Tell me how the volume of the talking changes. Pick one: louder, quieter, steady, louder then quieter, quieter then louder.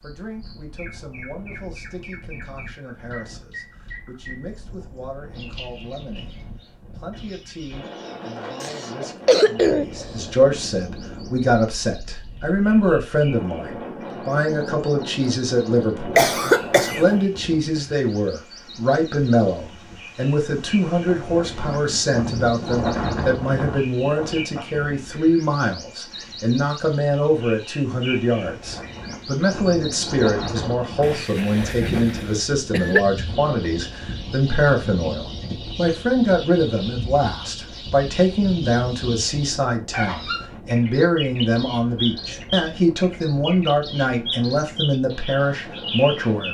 louder.